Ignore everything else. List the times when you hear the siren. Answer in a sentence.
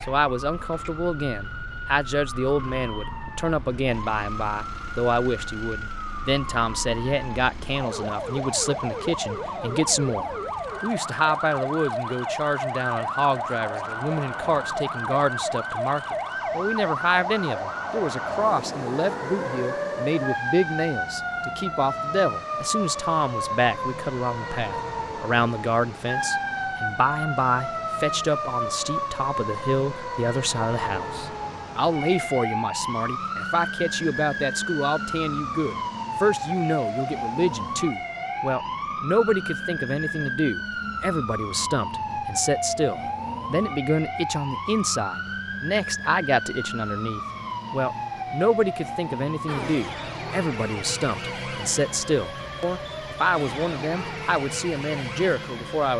You can hear the siren from 0.0 to 55.9 s.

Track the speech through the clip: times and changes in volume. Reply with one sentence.
You can hear the speech from 0.0 to 55.9 s, at a steady volume.